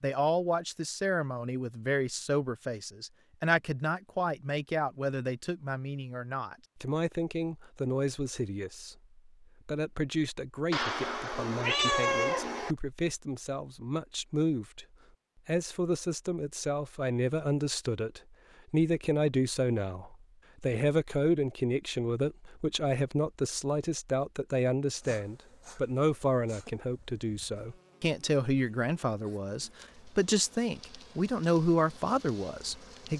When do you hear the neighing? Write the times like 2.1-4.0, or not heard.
not heard.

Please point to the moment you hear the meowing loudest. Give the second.
12 s.